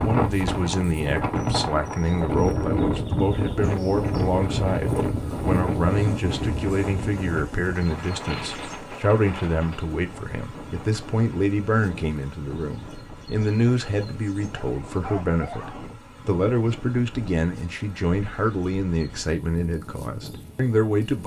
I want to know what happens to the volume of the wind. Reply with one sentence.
The loudness of the wind goes down.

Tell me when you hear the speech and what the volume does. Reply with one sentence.
The speech can be heard from 0.0 to 21.2 s, at a steady volume.